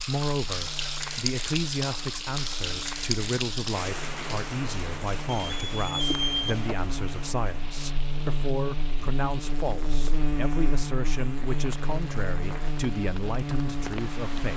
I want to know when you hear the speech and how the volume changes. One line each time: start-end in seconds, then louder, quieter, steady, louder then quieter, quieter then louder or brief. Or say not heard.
0.0-14.5 steady.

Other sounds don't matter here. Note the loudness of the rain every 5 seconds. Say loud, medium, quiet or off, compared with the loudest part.
loud, medium, medium.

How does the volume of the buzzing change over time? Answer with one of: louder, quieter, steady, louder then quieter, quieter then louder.
louder.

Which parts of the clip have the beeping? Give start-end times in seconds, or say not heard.
5.3-6.8.